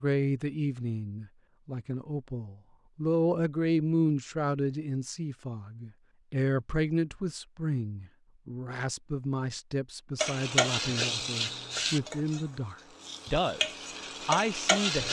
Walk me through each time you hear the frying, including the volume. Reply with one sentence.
The frying can be heard from 10.2 to 15.0 s, getting quieter then louder.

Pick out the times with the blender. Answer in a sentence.
The blender can't be heard in this clip.